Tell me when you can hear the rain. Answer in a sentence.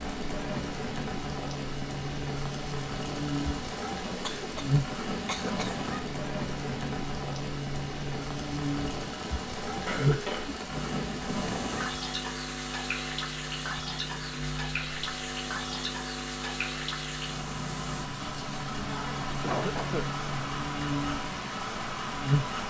You can hear the rain from 0.0 to 22.6 s.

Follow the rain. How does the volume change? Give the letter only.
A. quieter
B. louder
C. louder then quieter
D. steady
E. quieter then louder
D.